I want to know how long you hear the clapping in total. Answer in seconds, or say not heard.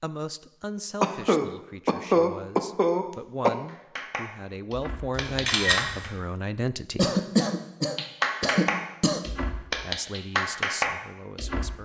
6 s.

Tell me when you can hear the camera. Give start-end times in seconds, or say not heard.
5.2-6.2.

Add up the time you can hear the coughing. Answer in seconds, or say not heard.
5 s.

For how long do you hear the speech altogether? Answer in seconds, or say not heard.
9 s.